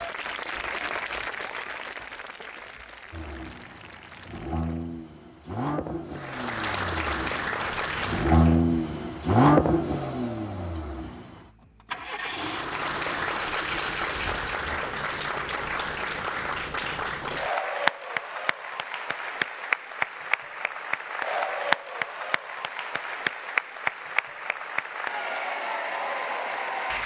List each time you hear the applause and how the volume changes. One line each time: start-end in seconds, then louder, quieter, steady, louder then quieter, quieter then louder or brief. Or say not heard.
0.0-4.9 quieter
6.1-8.6 brief
12.3-27.0 steady.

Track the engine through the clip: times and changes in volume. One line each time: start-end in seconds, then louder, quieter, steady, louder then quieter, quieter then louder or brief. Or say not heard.
3.1-14.6 louder then quieter.